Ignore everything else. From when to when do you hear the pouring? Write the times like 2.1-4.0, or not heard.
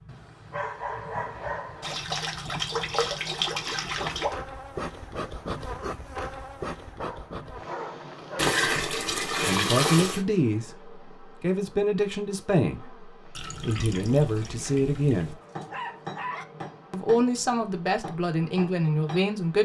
1.8-4.3, 8.3-10.2, 13.3-15.3.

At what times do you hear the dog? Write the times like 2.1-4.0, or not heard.
0.1-1.9, 7.0-8.6, 15.2-16.4.